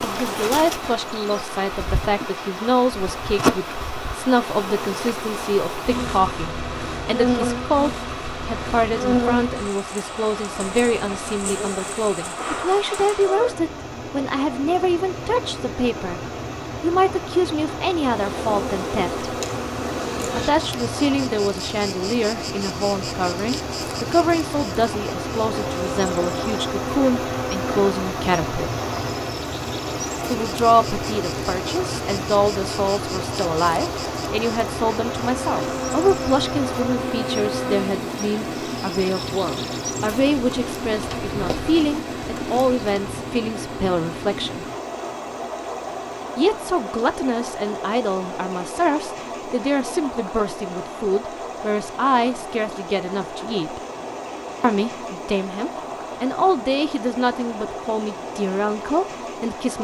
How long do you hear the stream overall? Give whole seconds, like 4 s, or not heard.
60 s.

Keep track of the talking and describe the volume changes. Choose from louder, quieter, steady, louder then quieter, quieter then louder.
steady.